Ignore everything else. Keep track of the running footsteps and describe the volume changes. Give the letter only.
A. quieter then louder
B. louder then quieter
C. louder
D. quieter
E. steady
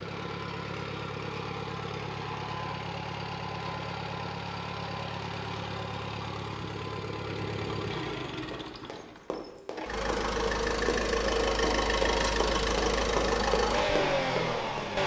C.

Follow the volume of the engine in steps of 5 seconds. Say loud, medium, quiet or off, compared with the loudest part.
medium, medium, loud.